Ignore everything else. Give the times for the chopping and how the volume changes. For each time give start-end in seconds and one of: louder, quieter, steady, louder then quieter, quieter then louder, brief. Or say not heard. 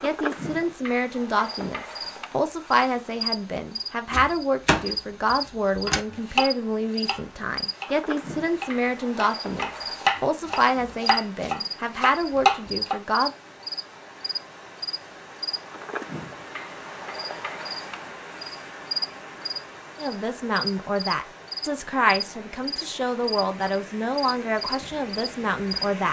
4.1-12.9 quieter then louder.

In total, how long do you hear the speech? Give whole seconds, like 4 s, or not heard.
19 s.